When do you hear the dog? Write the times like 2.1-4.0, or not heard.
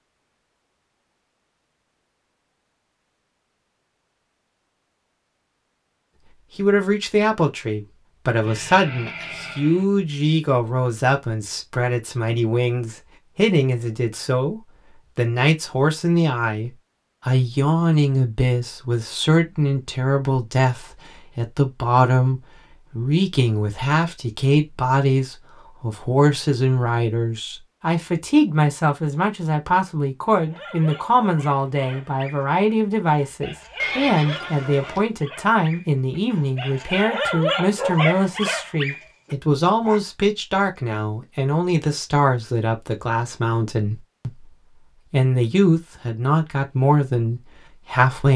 30.4-40.0.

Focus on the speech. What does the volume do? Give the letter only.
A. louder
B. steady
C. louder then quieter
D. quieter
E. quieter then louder
B.